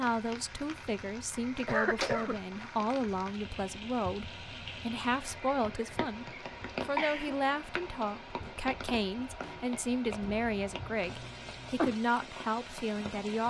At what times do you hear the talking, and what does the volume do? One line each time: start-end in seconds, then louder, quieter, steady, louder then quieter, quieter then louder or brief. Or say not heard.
0.0-13.4 steady.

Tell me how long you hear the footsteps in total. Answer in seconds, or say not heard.
not heard.